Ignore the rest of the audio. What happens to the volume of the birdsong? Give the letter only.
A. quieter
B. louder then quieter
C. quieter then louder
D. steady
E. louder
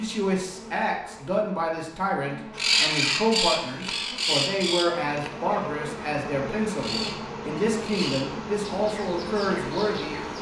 A.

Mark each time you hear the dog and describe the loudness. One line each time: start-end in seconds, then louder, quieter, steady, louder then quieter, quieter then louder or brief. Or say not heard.
not heard.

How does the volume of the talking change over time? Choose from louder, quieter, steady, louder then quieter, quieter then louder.
steady.